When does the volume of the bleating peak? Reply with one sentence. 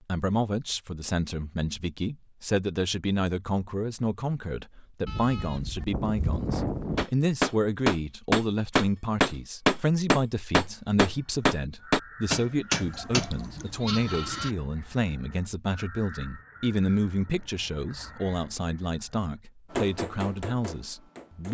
The volume of the bleating peaks at 7 seconds.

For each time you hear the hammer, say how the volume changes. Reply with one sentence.
You can hear the hammer from 7.0 to 13.3 s, at a steady volume; and briefly from 19.7 to 21.4 s.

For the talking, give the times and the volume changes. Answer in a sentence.
You can hear the talking from 0.1 to 21.4 s, at a steady volume.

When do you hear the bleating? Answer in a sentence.
The bleating can be heard from 5.0 to 7.0 s and from 12.8 to 14.6 s.